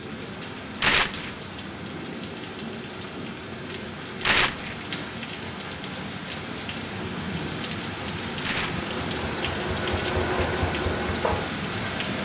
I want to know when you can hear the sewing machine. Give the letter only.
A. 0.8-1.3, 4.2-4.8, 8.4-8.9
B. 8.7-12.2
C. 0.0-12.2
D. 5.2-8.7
B.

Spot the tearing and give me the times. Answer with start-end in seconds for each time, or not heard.
0.8-1.3, 4.2-4.8, 8.4-8.9.